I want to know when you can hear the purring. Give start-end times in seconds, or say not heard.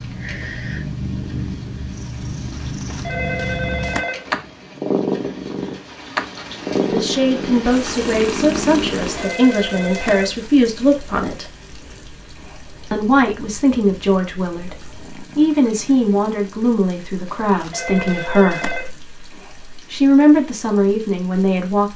0.0-16.7.